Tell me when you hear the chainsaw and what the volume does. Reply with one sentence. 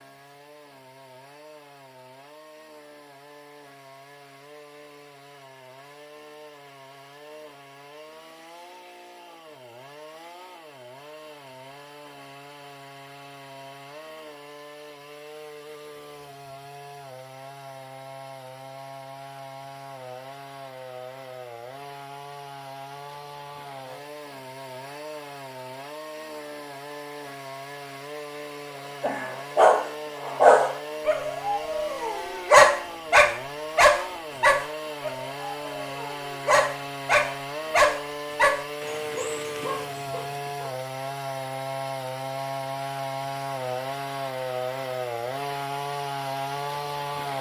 The chainsaw can be heard from 0.0 to 47.3 s, getting louder.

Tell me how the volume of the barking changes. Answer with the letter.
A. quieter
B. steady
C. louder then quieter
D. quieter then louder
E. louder
A.